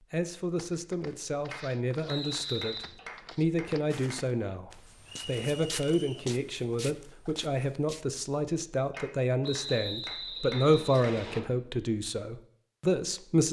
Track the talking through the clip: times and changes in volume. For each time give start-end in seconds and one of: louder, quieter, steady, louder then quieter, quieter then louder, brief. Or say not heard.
0.1-13.4 louder.